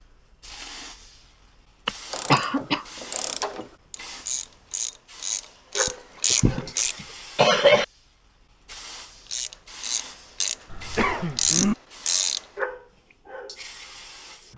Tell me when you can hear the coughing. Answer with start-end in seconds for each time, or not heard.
1.9-2.9, 5.8-7.8, 10.7-11.8.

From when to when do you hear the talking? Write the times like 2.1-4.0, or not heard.
not heard.